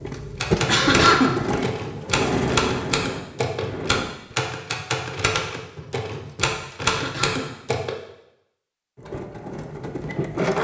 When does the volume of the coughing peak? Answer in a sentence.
The volume of the coughing peaks at 1 second.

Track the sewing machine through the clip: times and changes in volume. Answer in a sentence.
The sewing machine can be heard from 0.0 to 4.1 s, getting quieter; and briefly from 8.9 to 10.5 s.